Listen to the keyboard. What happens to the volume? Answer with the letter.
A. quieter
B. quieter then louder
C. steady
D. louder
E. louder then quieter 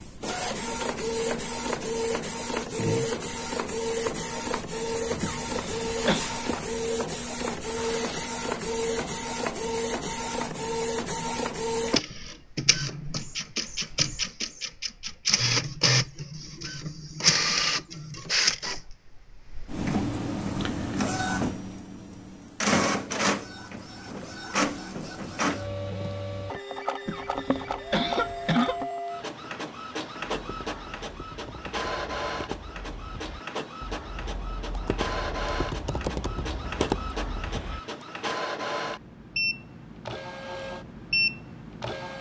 D.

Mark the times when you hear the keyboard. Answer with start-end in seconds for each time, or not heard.
30.4-38.0.